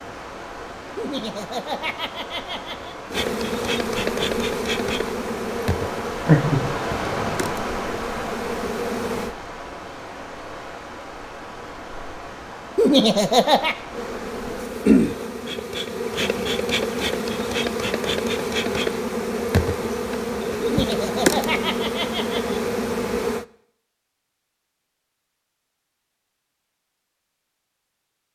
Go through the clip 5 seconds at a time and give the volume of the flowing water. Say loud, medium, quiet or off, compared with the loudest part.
medium, loud, medium, off, off, off.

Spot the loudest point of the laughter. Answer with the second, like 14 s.
13 s.